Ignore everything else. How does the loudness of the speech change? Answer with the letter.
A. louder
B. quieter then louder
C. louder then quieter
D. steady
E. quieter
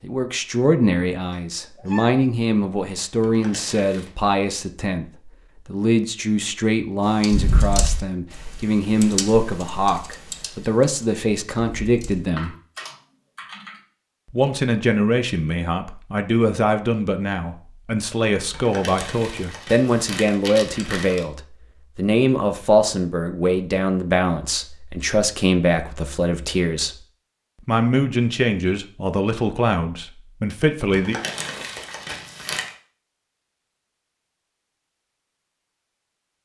D.